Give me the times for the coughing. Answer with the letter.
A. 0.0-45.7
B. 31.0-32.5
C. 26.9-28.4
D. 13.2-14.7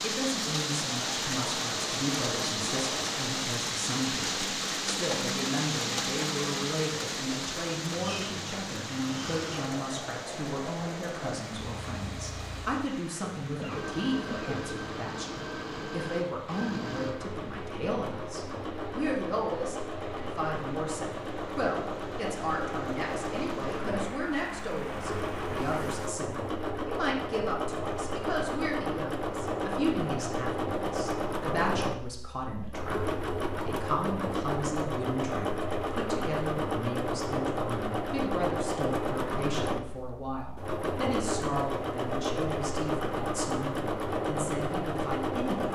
D.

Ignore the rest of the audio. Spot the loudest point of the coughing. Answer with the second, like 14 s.
14 s.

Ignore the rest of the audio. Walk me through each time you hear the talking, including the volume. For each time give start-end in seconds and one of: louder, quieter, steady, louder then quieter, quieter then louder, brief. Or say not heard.
0.0-45.7 steady.